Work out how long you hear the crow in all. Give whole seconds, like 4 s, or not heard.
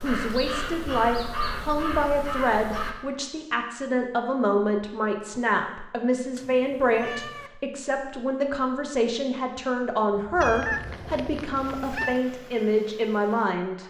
3 s.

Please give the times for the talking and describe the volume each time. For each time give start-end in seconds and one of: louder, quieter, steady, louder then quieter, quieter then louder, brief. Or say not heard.
0.0-13.8 steady.